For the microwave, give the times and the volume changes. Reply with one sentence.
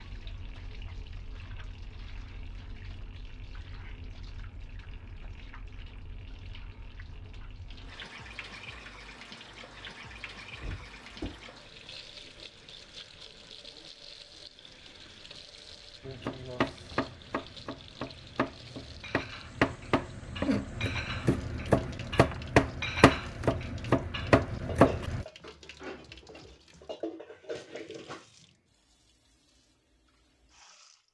The microwave can't be heard in this clip.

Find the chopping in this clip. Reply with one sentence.
You can hear the chopping from 16.1 to 25.2 s.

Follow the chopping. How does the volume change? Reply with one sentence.
The volume of the chopping goes up.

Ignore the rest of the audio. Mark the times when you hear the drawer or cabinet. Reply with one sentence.
You can hear the drawer or cabinet from 10.6 to 11.4 s.